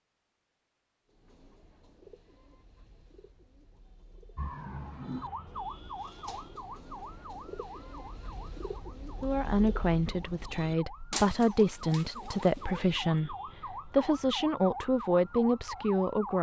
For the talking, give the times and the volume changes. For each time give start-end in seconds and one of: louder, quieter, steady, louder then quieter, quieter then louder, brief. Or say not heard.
9.2-16.3 steady.